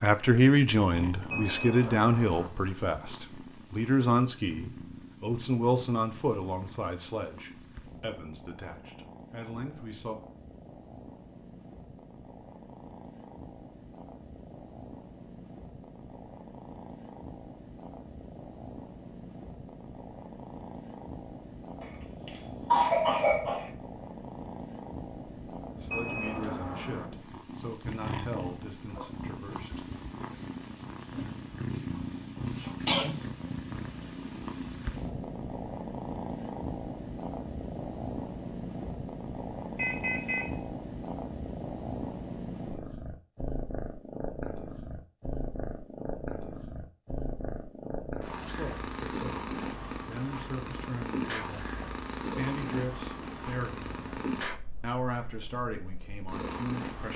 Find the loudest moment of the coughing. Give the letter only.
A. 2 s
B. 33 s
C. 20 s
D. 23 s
D.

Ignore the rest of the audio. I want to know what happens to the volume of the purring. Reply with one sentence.
The volume of the purring goes up.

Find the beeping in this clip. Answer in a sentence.
You can hear the beeping from 1.3 to 2.5 s, from 25.9 to 27.1 s and from 39.8 to 40.6 s.